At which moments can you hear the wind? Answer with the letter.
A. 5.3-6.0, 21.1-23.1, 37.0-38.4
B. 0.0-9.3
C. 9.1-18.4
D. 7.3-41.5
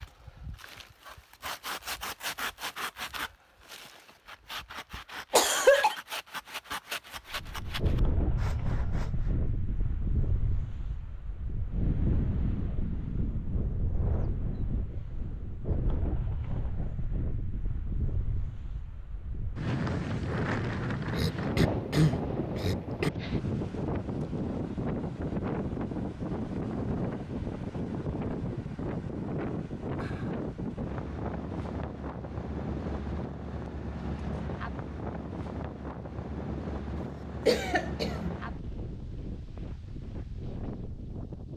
D.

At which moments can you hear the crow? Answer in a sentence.
You can't hear the crow here.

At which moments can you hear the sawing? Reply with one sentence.
You can hear the sawing from 0.0 to 9.3 s.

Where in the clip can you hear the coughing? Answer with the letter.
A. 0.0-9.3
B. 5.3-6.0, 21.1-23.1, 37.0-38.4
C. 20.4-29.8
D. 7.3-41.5
B.